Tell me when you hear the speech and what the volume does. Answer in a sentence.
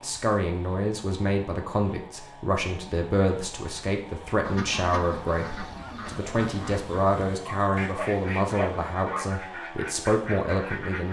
You can hear the speech from 0.0 to 11.0 s, at a steady volume.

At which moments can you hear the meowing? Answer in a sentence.
You can't hear the meowing here.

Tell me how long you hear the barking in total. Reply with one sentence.
The barking can be heard for 2 seconds in total.